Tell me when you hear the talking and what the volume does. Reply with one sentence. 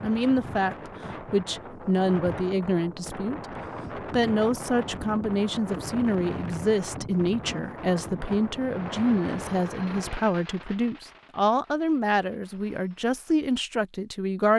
The talking can be heard from 0.0 to 14.5 s, at a steady volume.